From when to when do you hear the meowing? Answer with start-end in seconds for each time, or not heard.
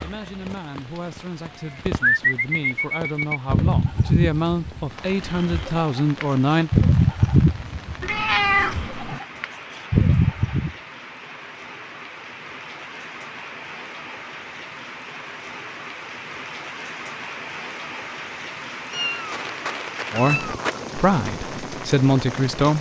8.0-9.2, 18.9-20.8.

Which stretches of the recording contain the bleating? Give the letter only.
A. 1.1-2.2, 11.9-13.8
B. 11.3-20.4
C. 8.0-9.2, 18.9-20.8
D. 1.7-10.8
D.